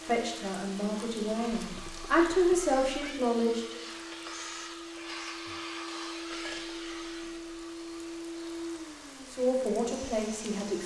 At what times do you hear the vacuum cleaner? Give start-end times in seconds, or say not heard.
0.0-10.8.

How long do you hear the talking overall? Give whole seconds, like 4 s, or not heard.
5 s.